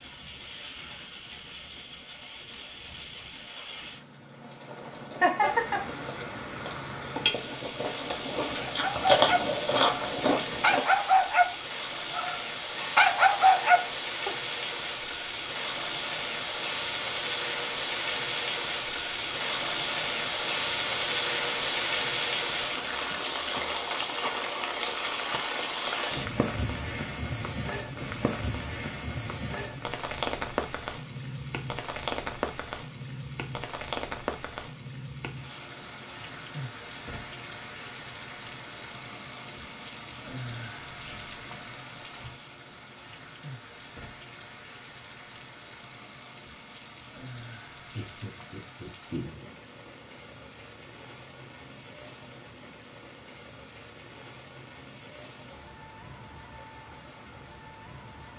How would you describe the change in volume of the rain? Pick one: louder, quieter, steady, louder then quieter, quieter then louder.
louder then quieter.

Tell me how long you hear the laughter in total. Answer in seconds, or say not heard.
2 s.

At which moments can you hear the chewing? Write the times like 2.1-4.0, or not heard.
4.9-10.8.